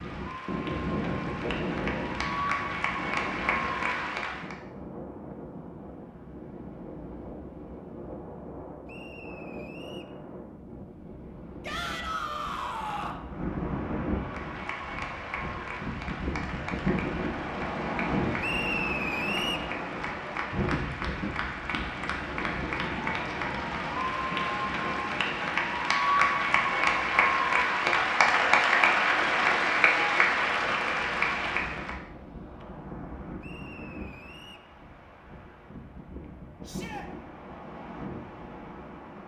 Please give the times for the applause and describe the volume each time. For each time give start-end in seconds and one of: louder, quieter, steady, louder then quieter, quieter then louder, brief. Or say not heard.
0.0-4.5 louder
14.2-31.9 louder.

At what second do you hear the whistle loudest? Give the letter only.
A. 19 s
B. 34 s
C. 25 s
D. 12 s
A.